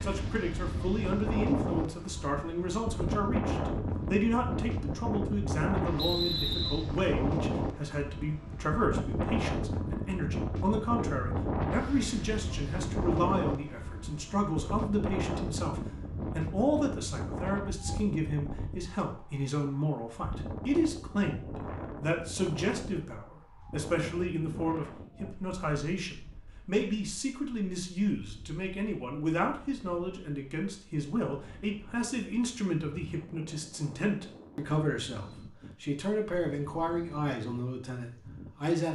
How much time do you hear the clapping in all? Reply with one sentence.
The clapping can't be heard in this clip.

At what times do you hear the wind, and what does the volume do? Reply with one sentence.
You can hear the wind from 0.0 to 38.8 s, getting quieter.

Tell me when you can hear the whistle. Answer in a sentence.
You can hear the whistle from 6.0 to 6.8 s.